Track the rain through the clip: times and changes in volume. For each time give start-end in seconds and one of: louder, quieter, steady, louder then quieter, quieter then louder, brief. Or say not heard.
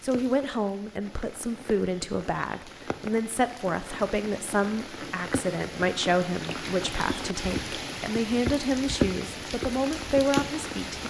0.0-11.0 louder.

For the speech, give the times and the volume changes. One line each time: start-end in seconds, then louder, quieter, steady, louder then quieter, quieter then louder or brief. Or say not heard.
0.0-11.0 steady.